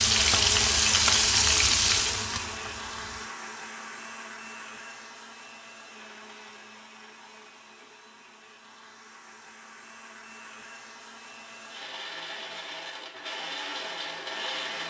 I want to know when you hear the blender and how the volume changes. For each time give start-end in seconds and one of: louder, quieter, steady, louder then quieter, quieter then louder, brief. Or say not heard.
0.0-14.8 quieter then louder.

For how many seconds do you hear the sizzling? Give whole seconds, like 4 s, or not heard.
3 s.